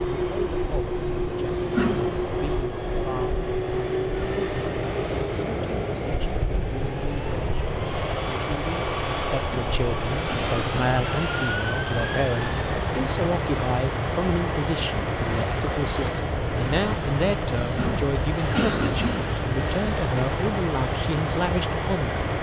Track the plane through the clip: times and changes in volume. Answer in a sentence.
The plane can be heard from 0.0 to 22.3 s, at a steady volume.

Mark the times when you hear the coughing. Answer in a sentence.
The coughing can be heard from 1.7 to 2.3 s, from 9.5 to 11.0 s and from 17.8 to 19.4 s.